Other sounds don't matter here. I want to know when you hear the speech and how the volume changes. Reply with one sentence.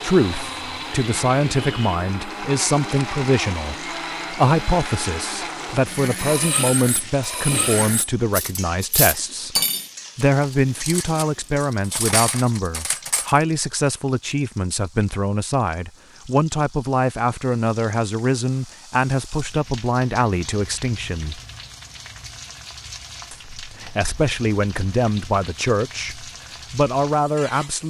You can hear the speech from 0.0 to 21.4 s, at a steady volume; and from 23.3 to 27.8 s, getting quieter then louder.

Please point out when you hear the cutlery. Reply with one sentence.
You can hear the cutlery from 6.2 to 13.4 s.